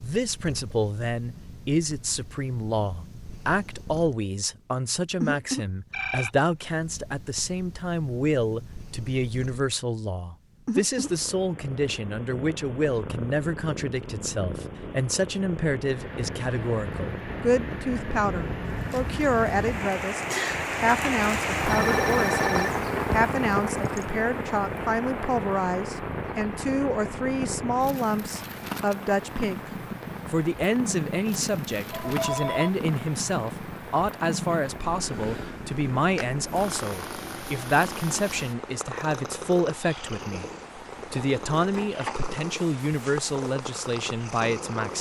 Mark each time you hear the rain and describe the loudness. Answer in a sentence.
You can hear the rain from 15.8 to 44.9 s, getting quieter.